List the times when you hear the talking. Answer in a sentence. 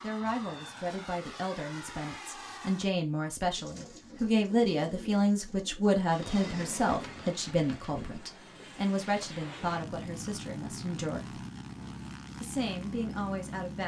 The talking can be heard from 0.0 to 11.4 s and from 12.4 to 13.8 s.